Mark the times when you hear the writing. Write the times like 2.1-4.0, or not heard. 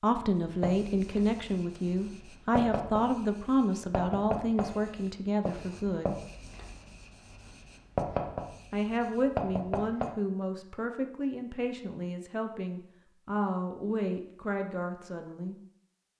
0.3-10.1.